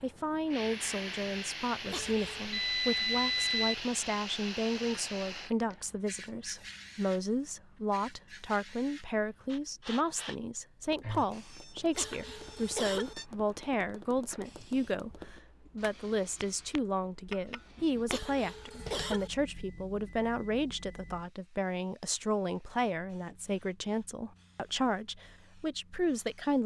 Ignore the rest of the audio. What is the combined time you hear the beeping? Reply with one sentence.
The beeping can be heard for 6 seconds in total.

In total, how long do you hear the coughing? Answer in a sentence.
You can hear the coughing for 3 seconds altogether.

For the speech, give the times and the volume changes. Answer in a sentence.
You can hear the speech from 0.0 to 26.6 s, at a steady volume.